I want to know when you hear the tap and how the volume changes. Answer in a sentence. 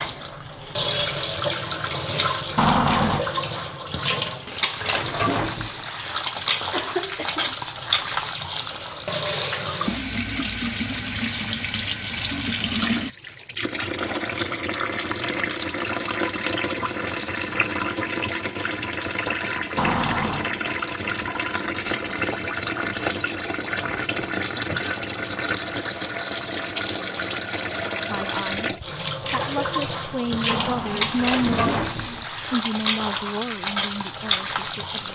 You can hear the tap from 0.0 to 35.1 s, at a steady volume.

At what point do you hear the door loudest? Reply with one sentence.
The volume of the door peaks at 3 seconds.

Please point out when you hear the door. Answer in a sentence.
You can hear the door from 2.5 to 3.2 s, from 19.8 to 20.5 s and from 30.4 to 32.2 s.